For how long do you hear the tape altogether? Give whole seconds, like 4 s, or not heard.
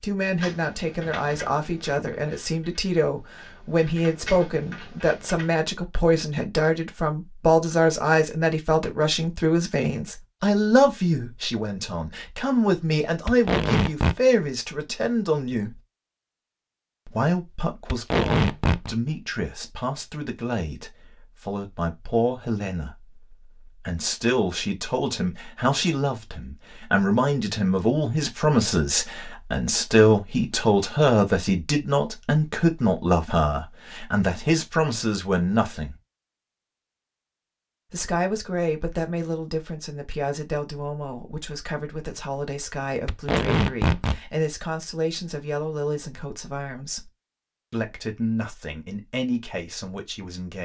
3 s.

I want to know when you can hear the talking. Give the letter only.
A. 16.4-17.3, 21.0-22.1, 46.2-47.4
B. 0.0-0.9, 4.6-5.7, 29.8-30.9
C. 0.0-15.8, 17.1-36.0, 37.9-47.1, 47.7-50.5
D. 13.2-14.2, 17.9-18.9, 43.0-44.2
C.